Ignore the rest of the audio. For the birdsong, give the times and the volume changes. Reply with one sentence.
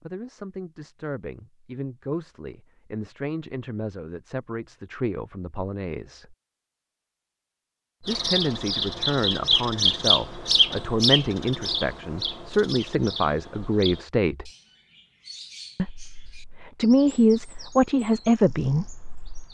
The birdsong can be heard from 8.1 to 19.4 s, getting quieter.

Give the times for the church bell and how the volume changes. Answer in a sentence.
The church bell can't be heard in this clip.